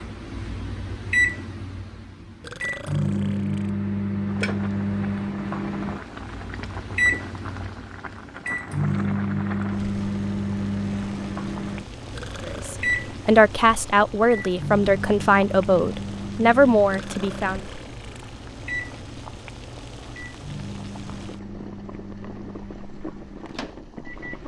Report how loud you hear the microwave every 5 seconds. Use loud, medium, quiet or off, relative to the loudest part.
loud, loud, loud, medium, quiet.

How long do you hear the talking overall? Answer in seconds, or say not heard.
5 s.